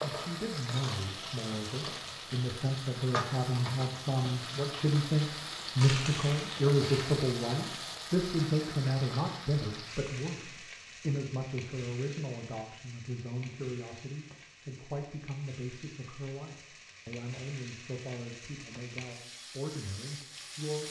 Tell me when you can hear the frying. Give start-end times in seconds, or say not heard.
0.0-20.8.